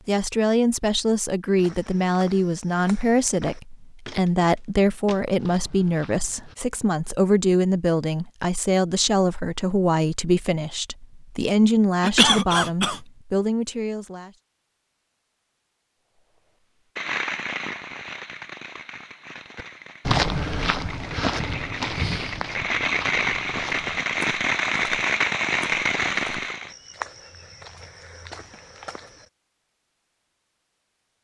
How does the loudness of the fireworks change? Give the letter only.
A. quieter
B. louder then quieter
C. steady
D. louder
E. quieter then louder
E.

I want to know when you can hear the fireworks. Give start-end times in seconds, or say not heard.
16.9-26.7.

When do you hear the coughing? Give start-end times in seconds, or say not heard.
12.0-13.0.